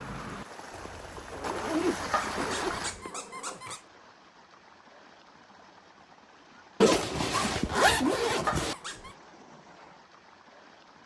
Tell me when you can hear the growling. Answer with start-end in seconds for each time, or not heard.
2.1-3.8, 8.4-9.2.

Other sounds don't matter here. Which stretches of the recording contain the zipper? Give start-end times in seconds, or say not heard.
0.7-3.1, 6.8-8.8.